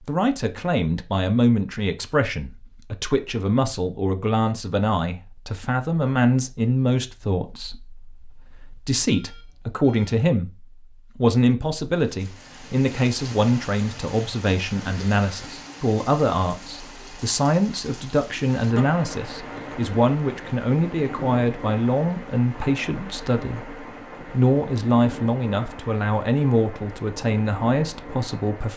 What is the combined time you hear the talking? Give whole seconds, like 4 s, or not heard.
29 s.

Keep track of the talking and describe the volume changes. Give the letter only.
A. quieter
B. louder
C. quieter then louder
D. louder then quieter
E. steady
E.